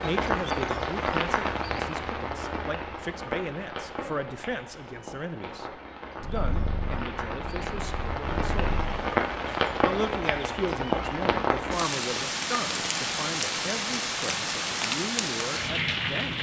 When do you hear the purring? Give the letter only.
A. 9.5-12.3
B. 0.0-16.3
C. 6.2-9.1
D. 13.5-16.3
C.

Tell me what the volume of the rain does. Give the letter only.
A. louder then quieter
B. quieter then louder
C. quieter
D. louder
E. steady
B.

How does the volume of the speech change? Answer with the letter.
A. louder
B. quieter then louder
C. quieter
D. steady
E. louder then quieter
D.